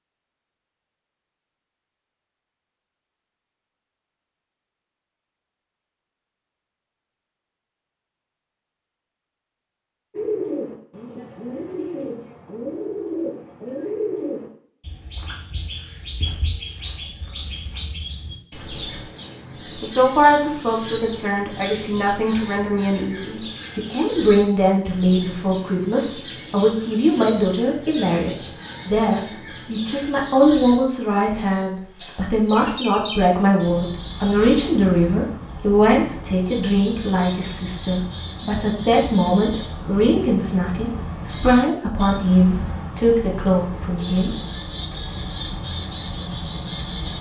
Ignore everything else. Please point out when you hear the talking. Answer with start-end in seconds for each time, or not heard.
19.8-44.3.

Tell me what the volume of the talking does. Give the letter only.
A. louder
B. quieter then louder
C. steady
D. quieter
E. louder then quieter
C.